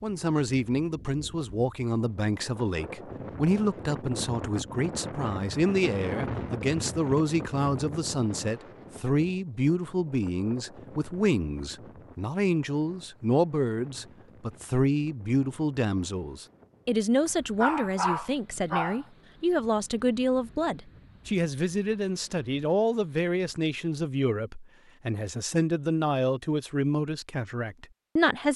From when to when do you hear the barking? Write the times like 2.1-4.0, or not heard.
17.2-19.1.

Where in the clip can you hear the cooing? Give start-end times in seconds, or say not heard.
not heard.